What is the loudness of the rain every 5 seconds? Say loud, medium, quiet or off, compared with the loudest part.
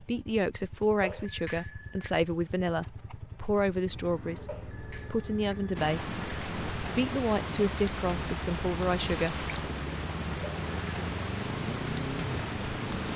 off, loud, loud.